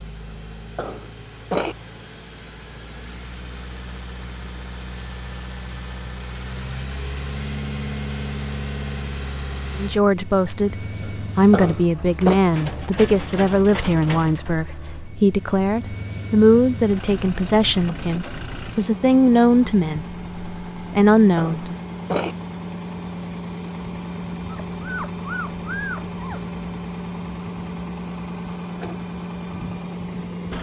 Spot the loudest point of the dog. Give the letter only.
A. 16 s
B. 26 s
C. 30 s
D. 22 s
B.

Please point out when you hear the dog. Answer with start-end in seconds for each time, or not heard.
24.4-26.4.